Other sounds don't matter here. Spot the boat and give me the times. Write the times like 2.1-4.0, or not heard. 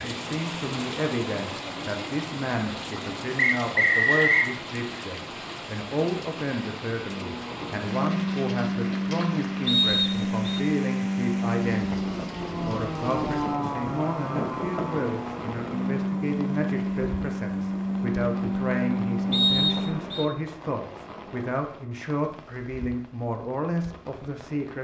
7.2-20.3.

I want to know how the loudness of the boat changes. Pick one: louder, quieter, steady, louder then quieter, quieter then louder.
steady.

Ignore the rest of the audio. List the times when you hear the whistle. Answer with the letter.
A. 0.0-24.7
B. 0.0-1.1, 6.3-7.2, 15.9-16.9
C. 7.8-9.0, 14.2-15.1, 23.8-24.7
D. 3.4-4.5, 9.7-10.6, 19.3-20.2
D.